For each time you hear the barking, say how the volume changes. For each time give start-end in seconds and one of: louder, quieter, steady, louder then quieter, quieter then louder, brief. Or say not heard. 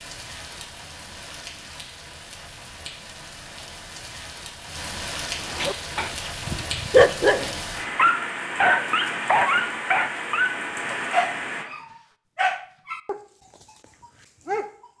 5.5-14.9 quieter.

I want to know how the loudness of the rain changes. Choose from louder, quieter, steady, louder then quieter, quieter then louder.
louder.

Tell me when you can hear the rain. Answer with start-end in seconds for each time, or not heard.
0.0-11.7.